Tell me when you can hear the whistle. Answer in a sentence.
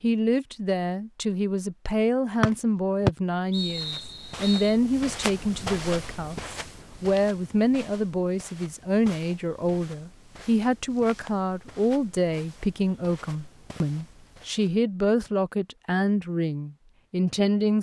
You can hear the whistle from 2.4 to 4.8 s.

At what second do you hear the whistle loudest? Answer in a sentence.
The volume of the whistle peaks at 3 seconds.